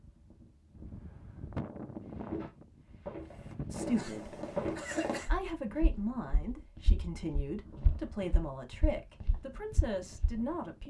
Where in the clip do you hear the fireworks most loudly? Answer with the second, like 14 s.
5 s.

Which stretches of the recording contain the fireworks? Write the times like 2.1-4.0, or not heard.
3.2-5.3.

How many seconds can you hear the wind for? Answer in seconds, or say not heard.
11 s.